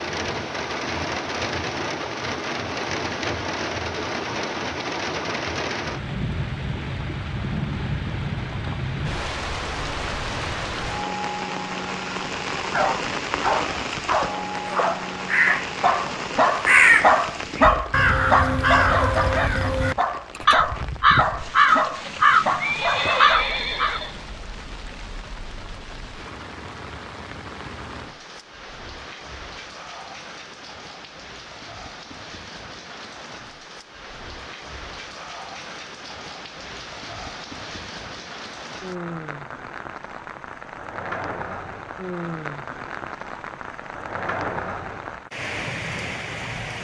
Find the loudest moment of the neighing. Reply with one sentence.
The loudest moment of the neighing is at 23 seconds.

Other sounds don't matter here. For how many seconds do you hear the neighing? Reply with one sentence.
The neighing can be heard for 3 seconds in total.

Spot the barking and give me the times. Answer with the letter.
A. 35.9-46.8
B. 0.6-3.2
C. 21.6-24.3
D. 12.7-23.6
D.